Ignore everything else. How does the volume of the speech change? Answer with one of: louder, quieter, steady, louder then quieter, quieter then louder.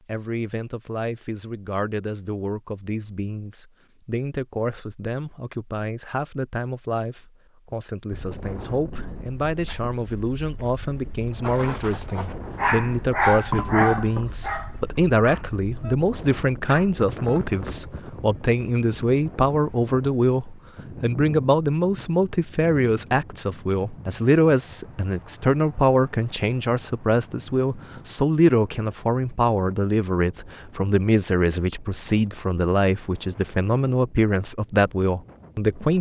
louder.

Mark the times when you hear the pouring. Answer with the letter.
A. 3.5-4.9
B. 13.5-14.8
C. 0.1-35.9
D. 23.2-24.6
B.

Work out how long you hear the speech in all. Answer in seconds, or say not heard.
36 s.